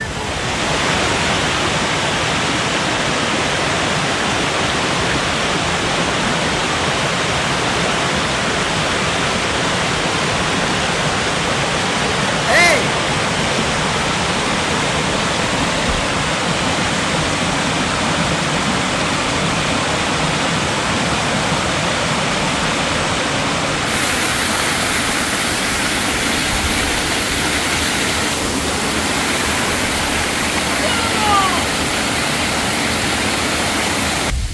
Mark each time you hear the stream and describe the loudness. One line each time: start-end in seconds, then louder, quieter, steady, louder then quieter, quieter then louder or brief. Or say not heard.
0.0-34.4 steady.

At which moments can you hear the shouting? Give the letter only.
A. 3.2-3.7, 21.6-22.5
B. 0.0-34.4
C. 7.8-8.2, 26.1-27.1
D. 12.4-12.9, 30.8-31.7
D.